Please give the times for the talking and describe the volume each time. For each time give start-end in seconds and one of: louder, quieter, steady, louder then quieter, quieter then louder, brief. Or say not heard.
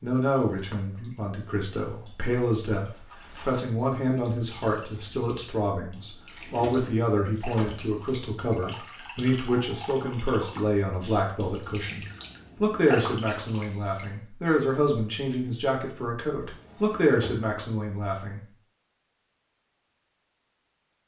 0.0-18.4 steady.